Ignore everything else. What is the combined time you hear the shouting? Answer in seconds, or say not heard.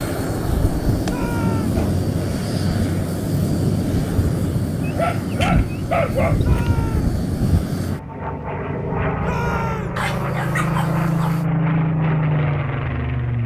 2 s.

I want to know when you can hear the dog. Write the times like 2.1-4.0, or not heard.
0.8-2.0, 4.8-6.7, 9.9-11.4.